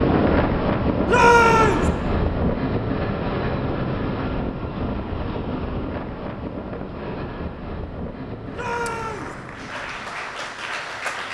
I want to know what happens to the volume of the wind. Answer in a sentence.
The volume of the wind goes down.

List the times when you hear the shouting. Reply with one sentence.
You can hear the shouting from 1.1 to 1.9 s and from 8.5 to 9.3 s.